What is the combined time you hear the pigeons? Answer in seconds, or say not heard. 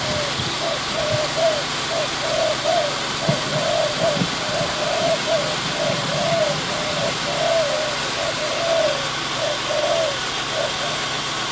11 s.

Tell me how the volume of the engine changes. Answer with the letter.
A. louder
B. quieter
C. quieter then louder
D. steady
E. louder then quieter
D.